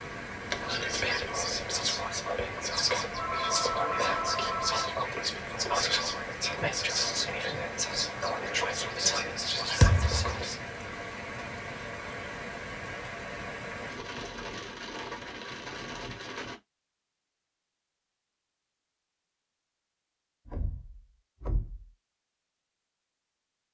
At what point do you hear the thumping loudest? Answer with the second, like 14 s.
10 s.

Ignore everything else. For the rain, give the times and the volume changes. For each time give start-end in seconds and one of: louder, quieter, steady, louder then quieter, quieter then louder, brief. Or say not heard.
0.0-16.6 steady.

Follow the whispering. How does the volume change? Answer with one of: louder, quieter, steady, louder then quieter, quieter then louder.
steady.